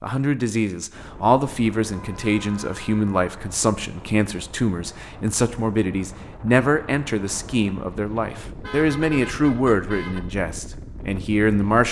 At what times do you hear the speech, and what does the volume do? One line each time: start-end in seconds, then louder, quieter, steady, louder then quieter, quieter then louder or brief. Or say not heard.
0.0-11.8 steady.